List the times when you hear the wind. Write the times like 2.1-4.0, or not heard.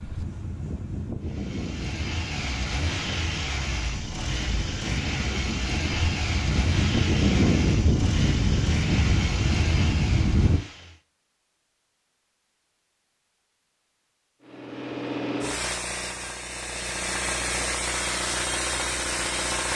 0.0-10.6.